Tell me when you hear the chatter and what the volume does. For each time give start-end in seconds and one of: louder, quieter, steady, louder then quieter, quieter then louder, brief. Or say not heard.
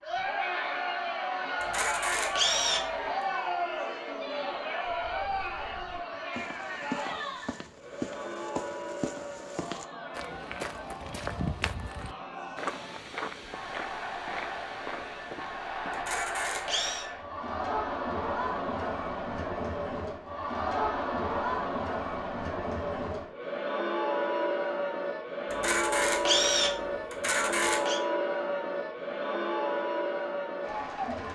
0.0-31.3 quieter then louder.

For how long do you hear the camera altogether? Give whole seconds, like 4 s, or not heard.
5 s.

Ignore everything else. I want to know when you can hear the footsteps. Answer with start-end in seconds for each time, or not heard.
4.8-16.1.